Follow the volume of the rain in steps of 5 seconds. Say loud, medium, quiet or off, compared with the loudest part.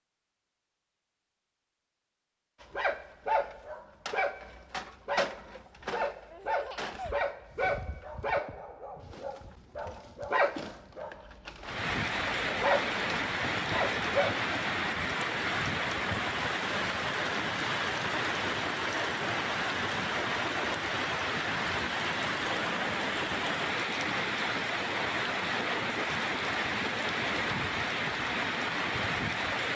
off, off, loud, loud, loud, loud.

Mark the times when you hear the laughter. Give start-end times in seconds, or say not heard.
6.3-7.2.